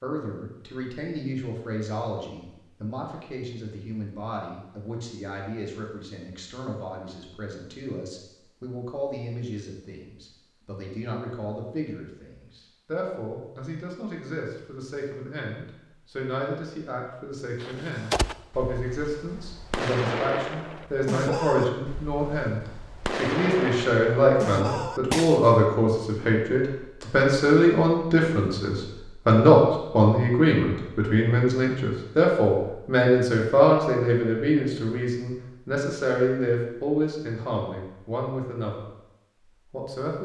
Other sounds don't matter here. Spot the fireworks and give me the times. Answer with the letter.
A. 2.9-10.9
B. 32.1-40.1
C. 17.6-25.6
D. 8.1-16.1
C.